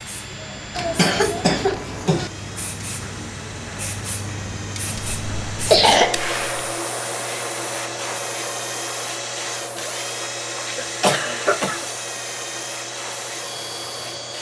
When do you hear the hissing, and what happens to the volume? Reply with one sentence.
You can hear the hissing from 0.0 to 14.3 s, getting louder then quieter.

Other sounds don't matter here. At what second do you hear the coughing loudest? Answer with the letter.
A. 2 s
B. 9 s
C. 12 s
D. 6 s
D.